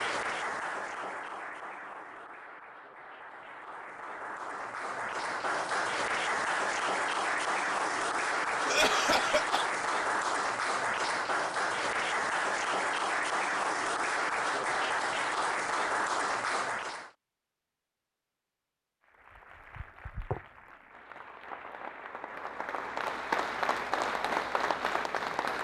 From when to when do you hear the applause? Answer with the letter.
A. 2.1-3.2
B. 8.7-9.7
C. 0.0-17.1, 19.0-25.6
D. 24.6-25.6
C.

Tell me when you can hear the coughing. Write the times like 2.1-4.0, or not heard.
8.7-9.7.